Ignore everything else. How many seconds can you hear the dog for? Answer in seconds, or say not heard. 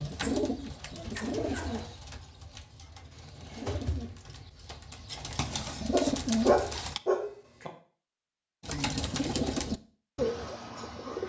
3 s.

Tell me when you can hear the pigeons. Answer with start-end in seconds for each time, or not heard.
0.0-7.0, 8.6-11.2.